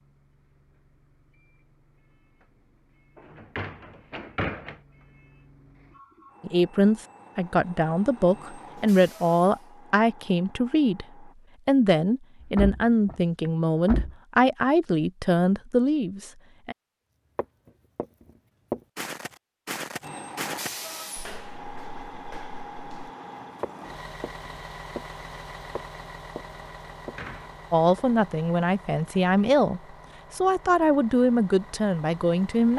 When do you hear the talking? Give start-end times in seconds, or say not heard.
6.4-16.8, 27.7-32.7.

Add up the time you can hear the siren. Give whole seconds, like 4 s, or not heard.
not heard.